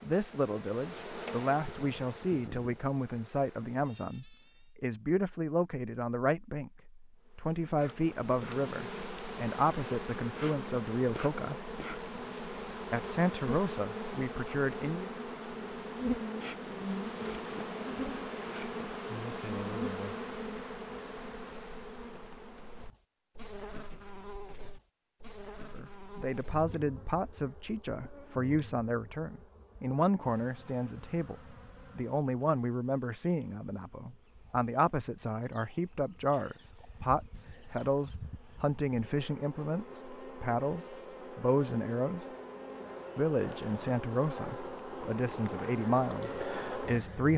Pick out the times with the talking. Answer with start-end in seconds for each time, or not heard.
0.0-11.6, 12.9-15.1, 25.7-42.2, 43.1-47.3.